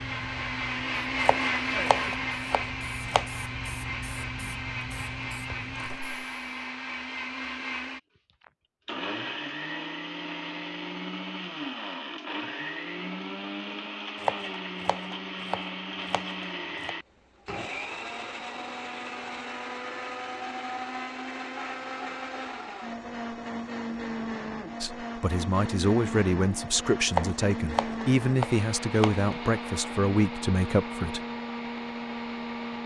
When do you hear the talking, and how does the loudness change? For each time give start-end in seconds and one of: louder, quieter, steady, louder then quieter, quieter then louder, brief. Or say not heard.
24.8-31.2 steady.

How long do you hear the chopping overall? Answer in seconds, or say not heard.
7 s.